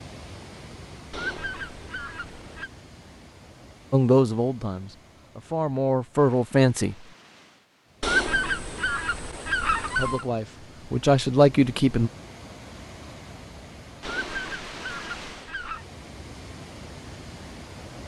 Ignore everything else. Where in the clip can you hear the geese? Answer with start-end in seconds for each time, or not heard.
1.1-2.7, 8.0-10.2, 14.0-15.8.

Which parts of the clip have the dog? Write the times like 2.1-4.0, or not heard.
not heard.